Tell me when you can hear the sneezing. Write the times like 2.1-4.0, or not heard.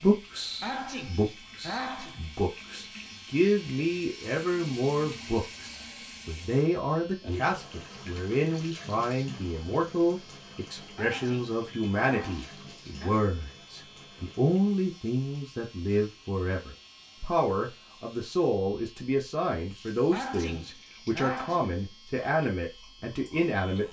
0.6-2.2, 10.9-13.2, 20.1-21.8.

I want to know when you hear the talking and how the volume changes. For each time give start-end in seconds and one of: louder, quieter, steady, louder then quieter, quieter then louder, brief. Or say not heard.
0.0-23.8 steady.